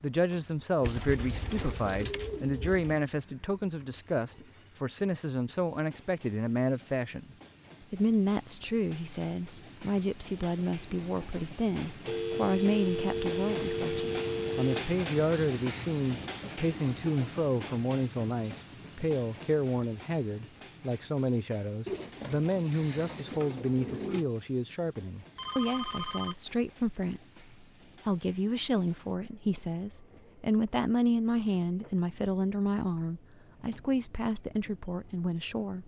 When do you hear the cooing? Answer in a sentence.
The cooing can be heard from 0.8 to 3.0 s and from 21.9 to 24.2 s.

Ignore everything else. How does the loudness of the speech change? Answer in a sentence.
The volume of the speech stays about the same.